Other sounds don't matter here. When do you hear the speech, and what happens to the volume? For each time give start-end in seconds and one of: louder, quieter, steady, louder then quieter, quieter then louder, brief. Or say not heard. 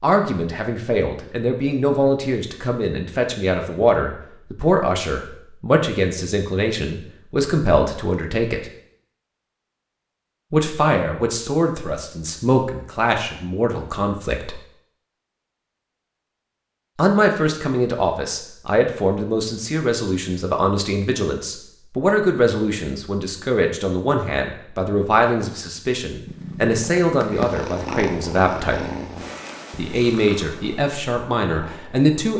0.0-8.7 steady
10.5-14.6 steady
16.9-28.8 steady
29.7-32.3 brief.